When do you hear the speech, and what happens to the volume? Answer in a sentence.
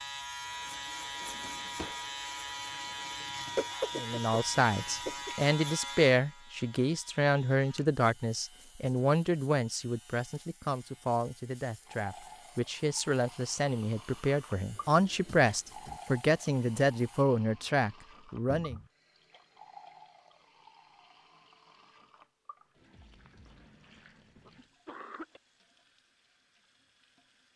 You can hear the speech from 4.0 to 18.8 s, getting quieter then louder.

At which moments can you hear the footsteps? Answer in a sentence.
You can't hear the footsteps here.